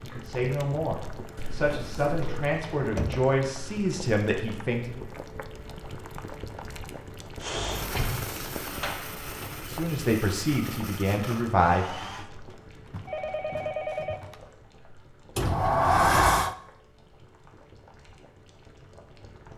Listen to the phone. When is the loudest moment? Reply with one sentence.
The loudest moment of the phone is at 14 seconds.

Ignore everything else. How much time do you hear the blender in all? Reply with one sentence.
You can hear the blender for 5 seconds altogether.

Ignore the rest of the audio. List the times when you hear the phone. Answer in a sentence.
The phone can be heard from 1.4 to 2.5 s and from 12.5 to 14.4 s.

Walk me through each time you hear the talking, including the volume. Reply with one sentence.
The talking can be heard from 0.0 to 5.0 s, at a steady volume; and briefly from 9.7 to 12.2 s.